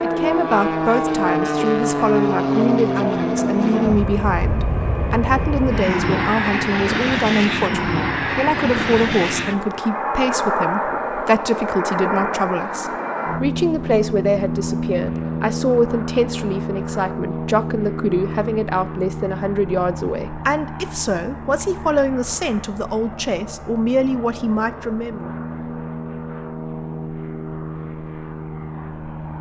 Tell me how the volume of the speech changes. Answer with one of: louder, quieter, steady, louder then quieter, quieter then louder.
steady.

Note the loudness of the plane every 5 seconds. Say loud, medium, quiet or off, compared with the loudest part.
loud, loud, loud, medium, quiet, medium.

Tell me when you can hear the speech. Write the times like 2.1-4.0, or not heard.
0.0-25.3.